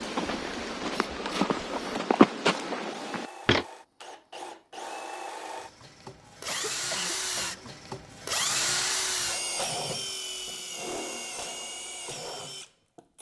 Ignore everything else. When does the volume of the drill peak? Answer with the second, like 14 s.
9 s.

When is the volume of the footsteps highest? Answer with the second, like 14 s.
2 s.